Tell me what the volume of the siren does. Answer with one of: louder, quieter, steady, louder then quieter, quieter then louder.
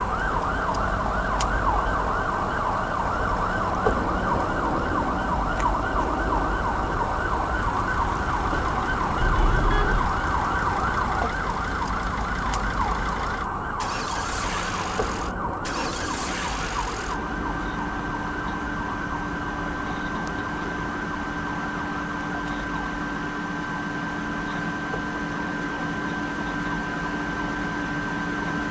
quieter.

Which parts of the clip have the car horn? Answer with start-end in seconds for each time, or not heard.
9.2-10.2.